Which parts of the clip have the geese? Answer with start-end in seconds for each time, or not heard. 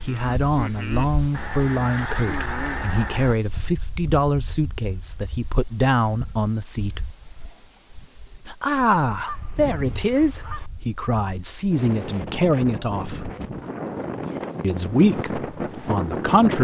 1.3-3.4, 9.2-10.7.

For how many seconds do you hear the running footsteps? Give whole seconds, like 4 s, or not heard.
not heard.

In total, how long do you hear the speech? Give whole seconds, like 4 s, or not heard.
14 s.